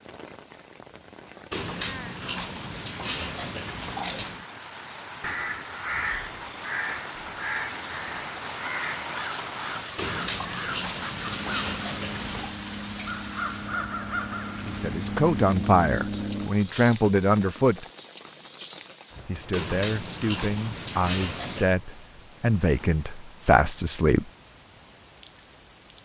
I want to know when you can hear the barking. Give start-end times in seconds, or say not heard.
1.5-4.5, 9.9-12.5, 19.5-21.8.